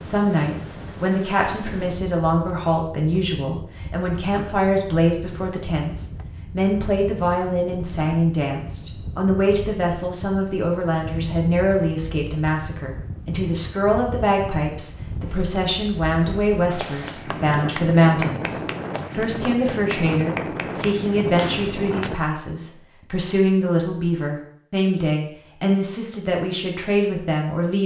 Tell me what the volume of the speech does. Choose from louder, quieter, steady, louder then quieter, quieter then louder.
steady.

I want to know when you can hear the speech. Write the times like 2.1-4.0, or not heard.
0.0-27.8.